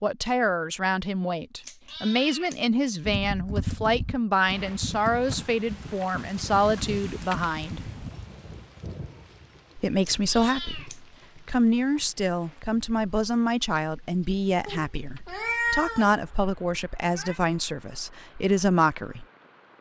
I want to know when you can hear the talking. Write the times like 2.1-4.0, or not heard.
0.0-7.8, 9.8-19.2.